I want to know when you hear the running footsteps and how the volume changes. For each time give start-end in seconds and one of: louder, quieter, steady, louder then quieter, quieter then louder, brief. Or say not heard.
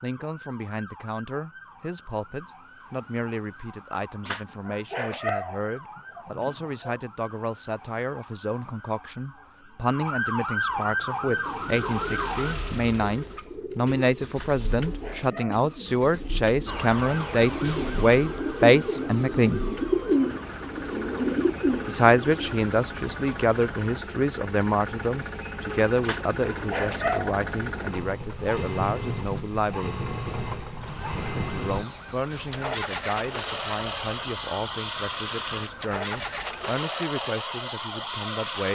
not heard.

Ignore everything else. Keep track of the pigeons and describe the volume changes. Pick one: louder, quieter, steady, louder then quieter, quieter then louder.
louder.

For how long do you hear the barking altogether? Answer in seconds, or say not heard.
5 s.